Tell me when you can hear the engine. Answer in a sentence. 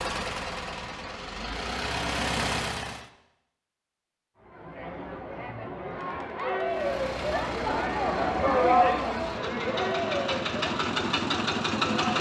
The engine can be heard from 0.0 to 3.1 s and from 6.7 to 12.1 s.